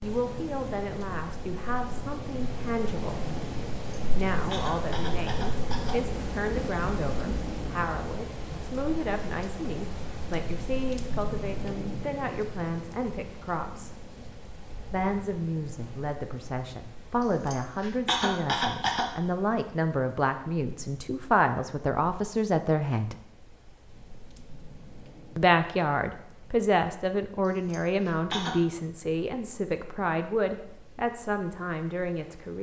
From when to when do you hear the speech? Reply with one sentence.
You can hear the speech from 0.0 to 3.2 s, from 4.2 to 14.1 s, from 14.9 to 23.1 s and from 25.4 to 32.5 s.